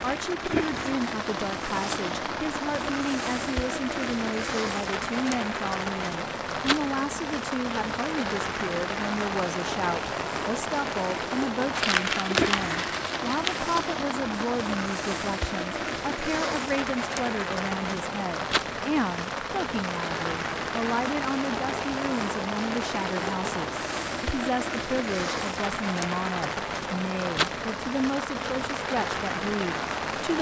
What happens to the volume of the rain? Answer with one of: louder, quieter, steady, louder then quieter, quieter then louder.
steady.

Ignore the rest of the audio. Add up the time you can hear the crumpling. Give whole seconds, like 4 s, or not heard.
2 s.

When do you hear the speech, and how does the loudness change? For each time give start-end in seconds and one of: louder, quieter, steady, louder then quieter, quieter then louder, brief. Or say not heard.
0.0-30.3 steady.